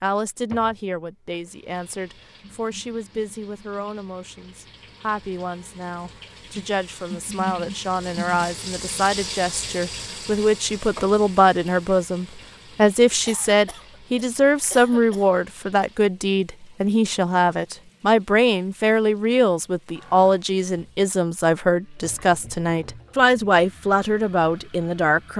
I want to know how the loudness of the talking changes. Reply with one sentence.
The loudness of the talking goes up.